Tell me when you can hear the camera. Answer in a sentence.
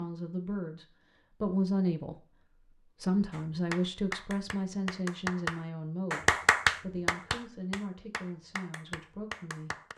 The camera can't be heard in this clip.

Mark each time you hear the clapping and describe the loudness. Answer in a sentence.
The clapping can be heard from 3.3 to 9.9 s, getting louder then quieter.